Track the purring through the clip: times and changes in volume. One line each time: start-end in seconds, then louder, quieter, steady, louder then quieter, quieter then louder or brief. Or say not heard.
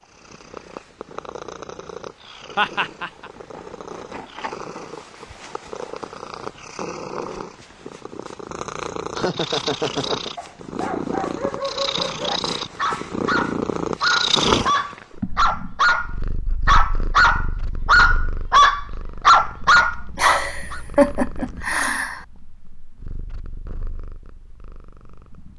0.0-25.5 louder then quieter.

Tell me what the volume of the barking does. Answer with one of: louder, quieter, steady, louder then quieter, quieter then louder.
louder.